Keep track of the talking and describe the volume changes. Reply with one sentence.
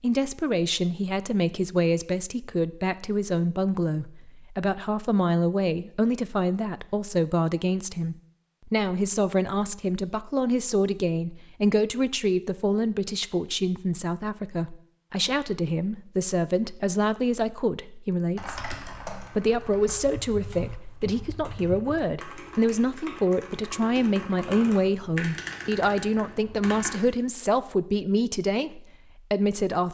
The volume of the talking stays about the same.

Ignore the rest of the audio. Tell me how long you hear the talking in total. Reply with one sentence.
You can hear the talking for 30 seconds altogether.